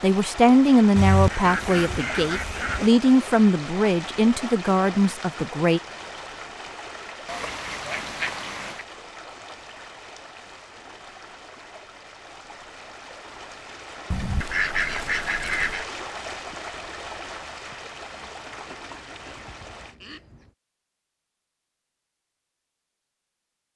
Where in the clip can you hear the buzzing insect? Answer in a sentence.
You can't hear the buzzing insect here.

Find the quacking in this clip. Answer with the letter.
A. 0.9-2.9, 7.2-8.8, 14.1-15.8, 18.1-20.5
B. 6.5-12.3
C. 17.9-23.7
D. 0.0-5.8
A.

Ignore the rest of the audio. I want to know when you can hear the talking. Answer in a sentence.
The talking can be heard from 0.0 to 5.8 s.